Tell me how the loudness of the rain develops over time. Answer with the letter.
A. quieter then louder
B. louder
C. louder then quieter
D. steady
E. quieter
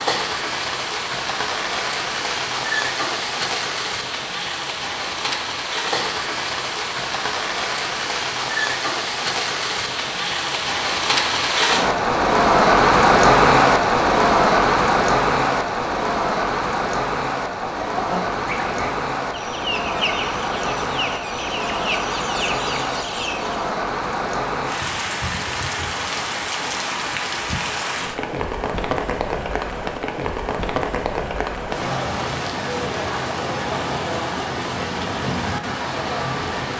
C.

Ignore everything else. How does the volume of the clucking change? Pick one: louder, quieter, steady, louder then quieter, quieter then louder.
steady.